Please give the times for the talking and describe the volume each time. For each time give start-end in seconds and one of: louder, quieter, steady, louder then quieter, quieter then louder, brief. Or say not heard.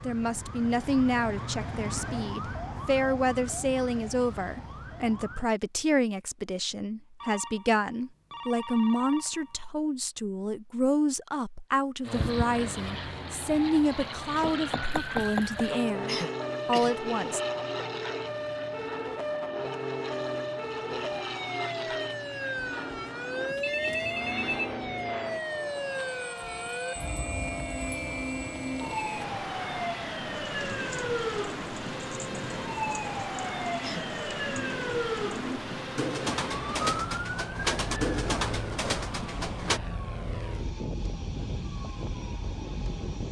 0.0-17.4 steady.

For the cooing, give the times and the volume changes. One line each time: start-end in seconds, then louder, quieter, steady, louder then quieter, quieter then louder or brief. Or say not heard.
30.3-39.8 louder.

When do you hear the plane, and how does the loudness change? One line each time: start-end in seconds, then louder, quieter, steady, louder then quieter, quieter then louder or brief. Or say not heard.
12.0-43.2 steady.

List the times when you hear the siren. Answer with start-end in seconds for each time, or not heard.
0.0-5.5, 12.2-43.2.